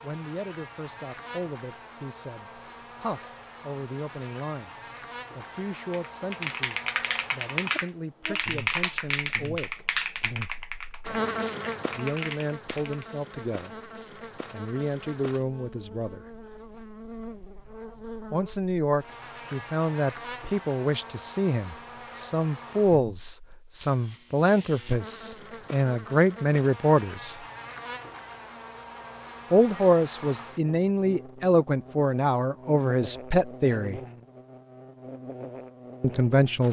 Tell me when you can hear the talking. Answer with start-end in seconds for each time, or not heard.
0.0-9.8, 11.9-13.9, 14.5-16.2, 18.3-27.4, 29.5-34.0, 36.0-36.6.